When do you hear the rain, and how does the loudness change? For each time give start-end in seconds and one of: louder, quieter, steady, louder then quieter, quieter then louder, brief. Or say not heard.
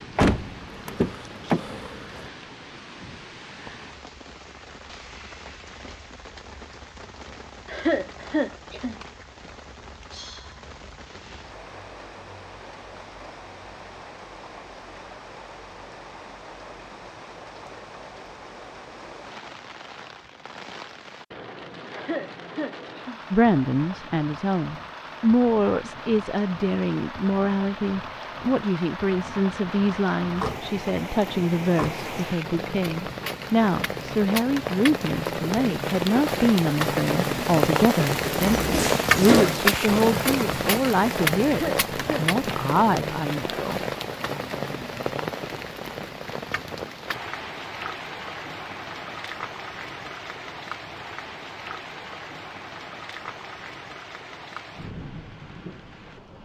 0.0-56.3 louder then quieter.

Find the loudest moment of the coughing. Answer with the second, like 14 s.
8 s.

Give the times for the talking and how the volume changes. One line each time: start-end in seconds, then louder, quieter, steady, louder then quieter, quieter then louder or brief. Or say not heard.
23.3-43.8 steady.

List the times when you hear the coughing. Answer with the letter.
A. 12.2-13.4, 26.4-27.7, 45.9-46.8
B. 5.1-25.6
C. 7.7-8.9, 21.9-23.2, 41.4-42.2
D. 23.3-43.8
C.